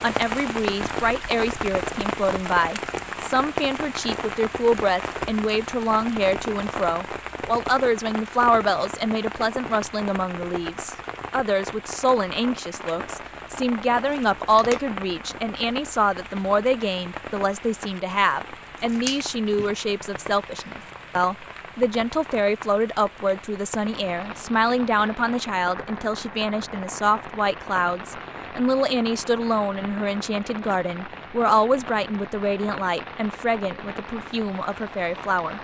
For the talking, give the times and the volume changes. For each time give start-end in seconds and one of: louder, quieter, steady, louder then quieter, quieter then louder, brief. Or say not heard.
0.0-35.5 steady.